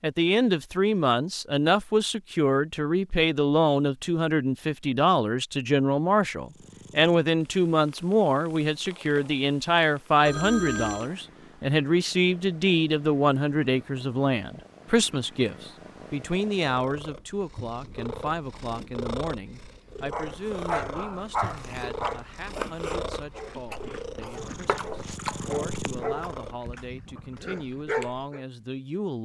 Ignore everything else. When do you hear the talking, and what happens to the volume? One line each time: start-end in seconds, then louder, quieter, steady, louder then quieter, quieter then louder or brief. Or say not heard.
0.0-29.1 quieter.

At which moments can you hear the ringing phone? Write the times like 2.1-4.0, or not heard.
10.2-11.1.